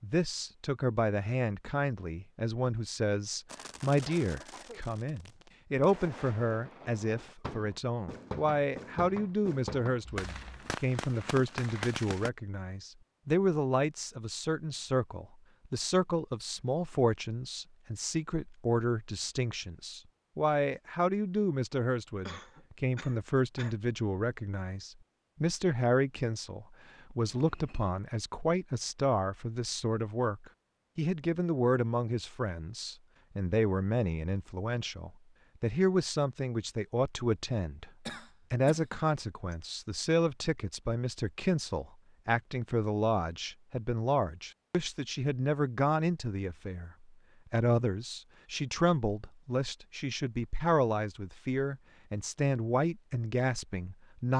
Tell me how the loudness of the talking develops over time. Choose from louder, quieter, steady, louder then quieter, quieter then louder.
steady.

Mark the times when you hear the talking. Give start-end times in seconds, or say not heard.
0.0-37.9, 38.5-46.9, 47.5-54.3.